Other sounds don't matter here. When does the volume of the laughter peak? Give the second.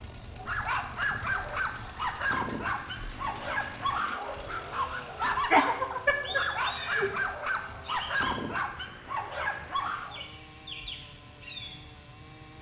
6 s.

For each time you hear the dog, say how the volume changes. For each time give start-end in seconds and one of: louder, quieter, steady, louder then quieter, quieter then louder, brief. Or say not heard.
0.3-10.2 steady.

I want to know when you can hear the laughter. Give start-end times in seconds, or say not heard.
5.5-7.1.